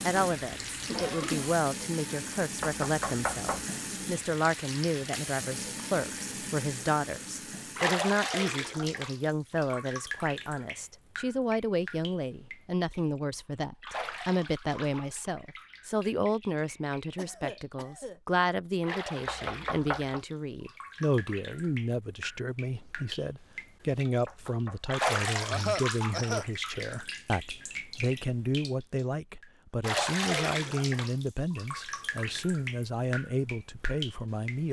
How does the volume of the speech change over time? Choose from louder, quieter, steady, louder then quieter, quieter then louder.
steady.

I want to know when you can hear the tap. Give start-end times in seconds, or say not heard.
0.0-34.6.